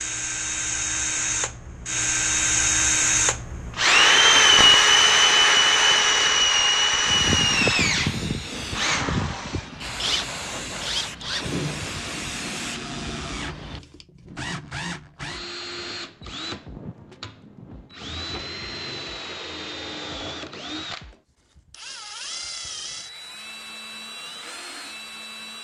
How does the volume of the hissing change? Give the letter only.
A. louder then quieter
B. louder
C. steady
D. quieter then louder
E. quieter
E.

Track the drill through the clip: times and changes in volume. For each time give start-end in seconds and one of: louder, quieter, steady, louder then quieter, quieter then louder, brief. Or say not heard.
0.0-25.5 quieter.